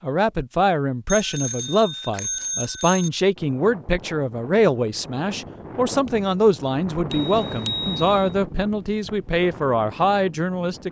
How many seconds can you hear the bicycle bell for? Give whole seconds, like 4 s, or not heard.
3 s.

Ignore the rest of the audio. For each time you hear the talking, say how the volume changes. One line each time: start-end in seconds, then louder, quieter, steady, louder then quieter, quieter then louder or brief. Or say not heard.
0.0-10.8 steady.